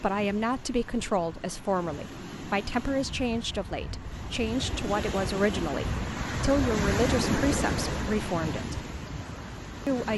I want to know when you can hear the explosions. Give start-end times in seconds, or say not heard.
not heard.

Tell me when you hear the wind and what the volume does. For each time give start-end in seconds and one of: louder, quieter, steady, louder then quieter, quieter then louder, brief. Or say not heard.
0.0-10.1 louder then quieter.